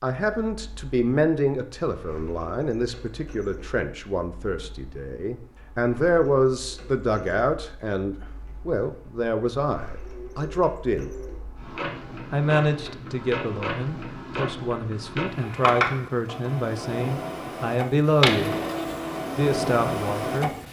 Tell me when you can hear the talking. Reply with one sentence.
You can hear the talking from 0.0 to 11.1 s, from 12.3 to 18.6 s and from 19.4 to 20.5 s.